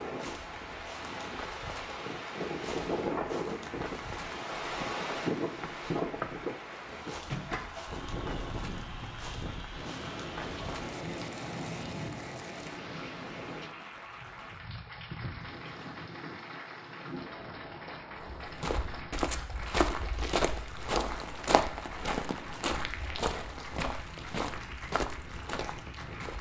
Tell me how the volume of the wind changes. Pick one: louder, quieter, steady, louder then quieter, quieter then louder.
quieter.